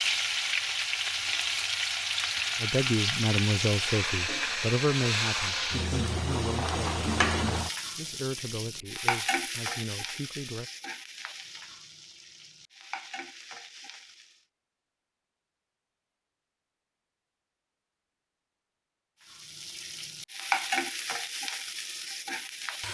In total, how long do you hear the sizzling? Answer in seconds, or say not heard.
18 s.